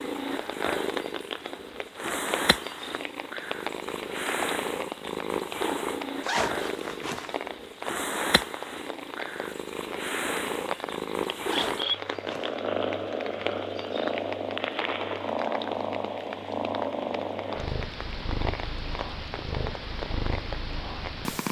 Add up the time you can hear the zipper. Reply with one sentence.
The zipper can be heard for 2 seconds in total.